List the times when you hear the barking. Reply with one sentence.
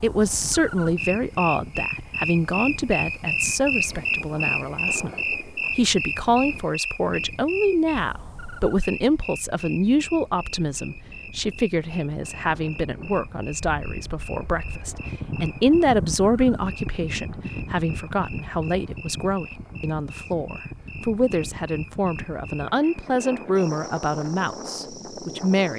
You can't hear the barking here.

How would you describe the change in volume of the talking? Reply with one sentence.
The volume of the talking stays about the same.